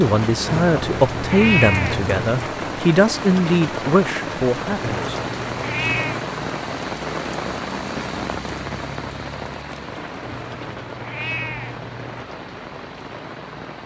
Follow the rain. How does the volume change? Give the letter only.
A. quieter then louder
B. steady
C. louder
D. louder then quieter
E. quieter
E.